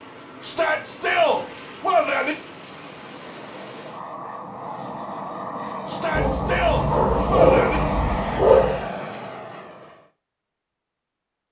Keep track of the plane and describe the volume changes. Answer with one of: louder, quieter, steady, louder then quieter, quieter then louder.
louder.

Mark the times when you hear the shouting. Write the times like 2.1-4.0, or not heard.
0.4-2.4, 5.8-7.8.